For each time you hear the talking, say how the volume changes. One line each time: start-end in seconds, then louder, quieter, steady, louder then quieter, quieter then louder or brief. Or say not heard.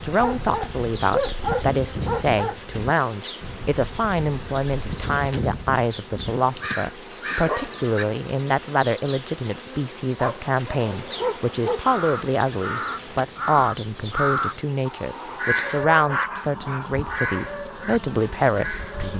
0.0-19.1 steady.